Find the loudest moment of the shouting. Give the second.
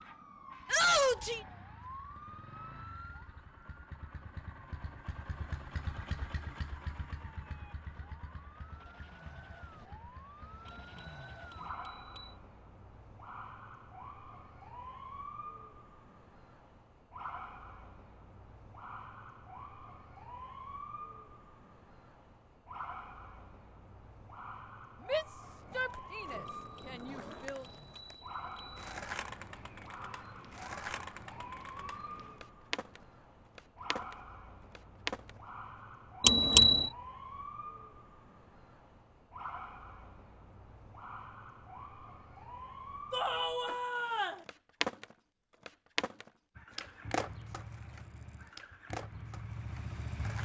1 s.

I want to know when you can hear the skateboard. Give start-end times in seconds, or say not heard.
25.4-35.4, 43.6-50.4.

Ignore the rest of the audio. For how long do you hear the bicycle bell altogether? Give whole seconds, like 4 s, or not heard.
5 s.